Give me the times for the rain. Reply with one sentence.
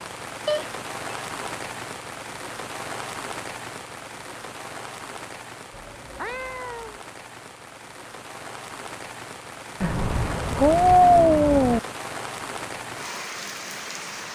The rain can be heard from 0.0 to 14.2 s.